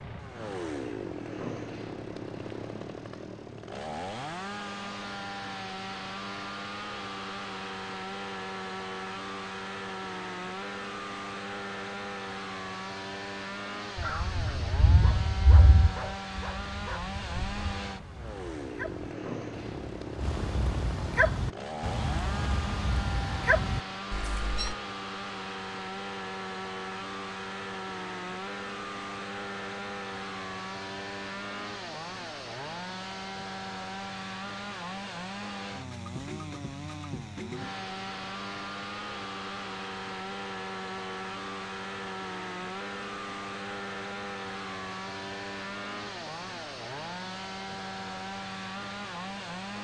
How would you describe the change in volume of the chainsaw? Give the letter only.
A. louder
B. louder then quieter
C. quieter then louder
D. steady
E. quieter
D.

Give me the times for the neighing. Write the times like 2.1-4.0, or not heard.
not heard.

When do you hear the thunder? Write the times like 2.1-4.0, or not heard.
13.9-17.8.